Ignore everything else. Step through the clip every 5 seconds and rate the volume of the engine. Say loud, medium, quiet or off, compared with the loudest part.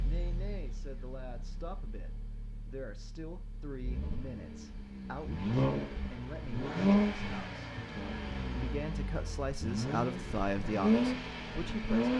quiet, loud, loud.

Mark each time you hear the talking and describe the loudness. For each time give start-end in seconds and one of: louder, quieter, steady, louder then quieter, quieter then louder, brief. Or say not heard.
0.0-12.1 louder.